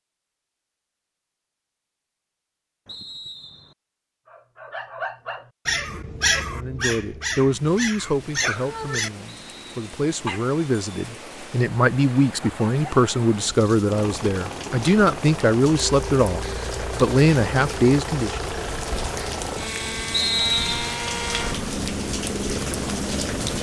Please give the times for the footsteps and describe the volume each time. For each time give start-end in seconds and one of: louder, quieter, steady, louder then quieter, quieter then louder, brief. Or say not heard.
not heard.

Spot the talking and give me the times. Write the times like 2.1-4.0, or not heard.
6.5-18.4.